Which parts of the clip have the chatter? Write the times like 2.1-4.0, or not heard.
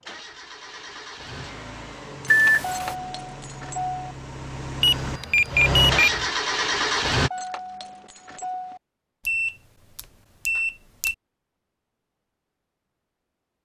not heard.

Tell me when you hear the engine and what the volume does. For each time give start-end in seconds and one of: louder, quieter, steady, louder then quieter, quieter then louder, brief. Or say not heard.
0.0-7.3 louder.